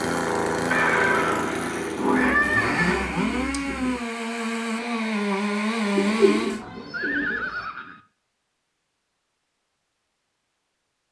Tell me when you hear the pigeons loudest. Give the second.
6 s.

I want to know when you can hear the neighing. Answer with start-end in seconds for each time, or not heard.
0.7-3.0, 6.9-8.0.